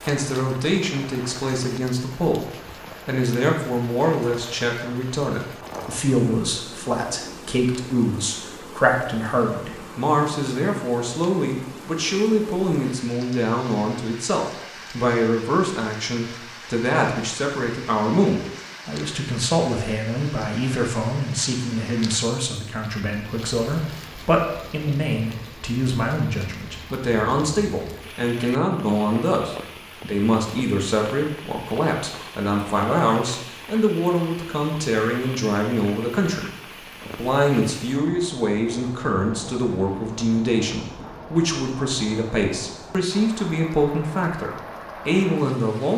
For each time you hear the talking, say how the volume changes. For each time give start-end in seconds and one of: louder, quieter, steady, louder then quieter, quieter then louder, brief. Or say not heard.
0.0-45.9 steady.